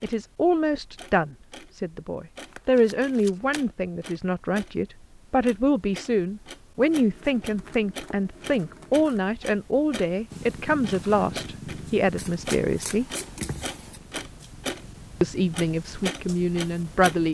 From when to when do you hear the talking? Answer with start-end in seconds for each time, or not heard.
0.0-13.1, 15.2-17.2.